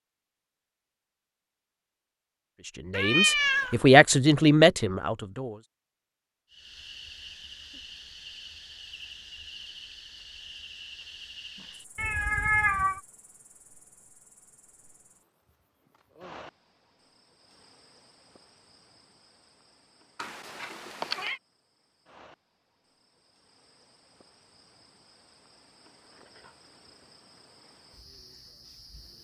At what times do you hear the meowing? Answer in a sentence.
You can hear the meowing from 2.9 to 3.8 s, from 11.9 to 13.0 s and from 20.1 to 21.4 s.